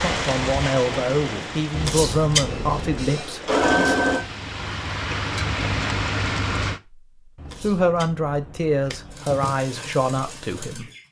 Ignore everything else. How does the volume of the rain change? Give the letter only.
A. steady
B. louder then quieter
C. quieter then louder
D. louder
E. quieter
C.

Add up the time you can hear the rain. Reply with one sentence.
The rain can be heard for 7 seconds in total.